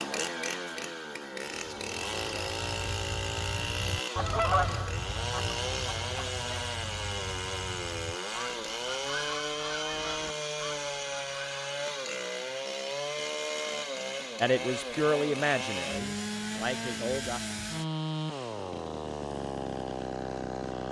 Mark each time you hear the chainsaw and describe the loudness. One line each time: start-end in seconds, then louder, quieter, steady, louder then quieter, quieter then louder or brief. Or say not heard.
0.0-20.8 steady.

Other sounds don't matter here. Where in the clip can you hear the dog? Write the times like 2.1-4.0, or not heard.
not heard.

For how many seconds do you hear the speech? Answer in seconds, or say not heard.
3 s.